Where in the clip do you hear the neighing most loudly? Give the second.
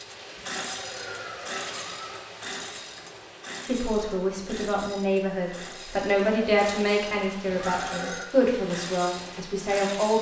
8 s.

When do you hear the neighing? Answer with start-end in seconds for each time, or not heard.
0.3-2.4, 7.5-8.3.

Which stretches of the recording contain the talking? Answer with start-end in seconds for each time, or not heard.
3.6-10.1.